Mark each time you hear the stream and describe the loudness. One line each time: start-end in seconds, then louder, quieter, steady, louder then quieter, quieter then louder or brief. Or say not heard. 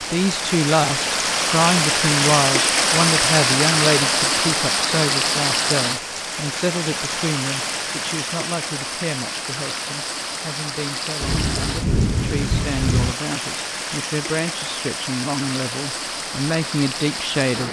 0.0-17.6 quieter.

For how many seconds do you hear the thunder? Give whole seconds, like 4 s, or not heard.
2 s.